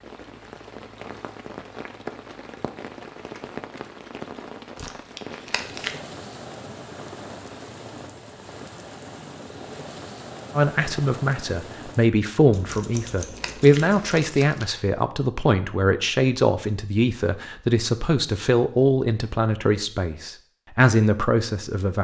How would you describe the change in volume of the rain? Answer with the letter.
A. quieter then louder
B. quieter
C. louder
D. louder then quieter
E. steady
E.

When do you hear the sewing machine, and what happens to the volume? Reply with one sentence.
The sewing machine can't be heard in this clip.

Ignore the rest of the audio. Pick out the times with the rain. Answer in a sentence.
You can hear the rain from 0.0 to 12.1 s.